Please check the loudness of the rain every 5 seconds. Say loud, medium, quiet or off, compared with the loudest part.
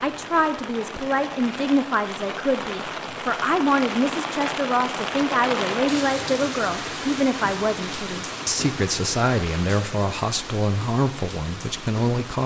loud, loud, medium.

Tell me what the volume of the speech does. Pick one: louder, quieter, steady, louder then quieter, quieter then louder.
steady.